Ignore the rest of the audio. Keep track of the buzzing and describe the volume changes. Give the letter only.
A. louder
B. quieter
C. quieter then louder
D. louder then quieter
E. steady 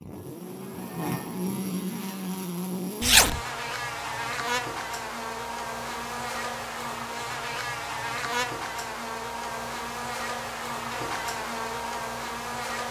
E.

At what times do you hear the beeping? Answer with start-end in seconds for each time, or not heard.
not heard.